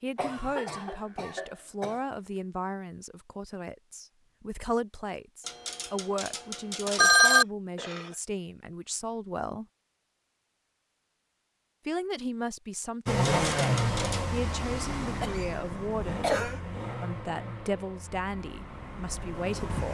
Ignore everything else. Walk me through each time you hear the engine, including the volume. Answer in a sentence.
The engine can be heard from 13.1 to 19.8 s, getting quieter.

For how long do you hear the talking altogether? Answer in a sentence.
The talking can be heard for 17 seconds in total.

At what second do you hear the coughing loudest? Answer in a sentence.
The loudest moment of the coughing is at 16 seconds.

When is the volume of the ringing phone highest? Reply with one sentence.
The volume of the ringing phone peaks at 7 seconds.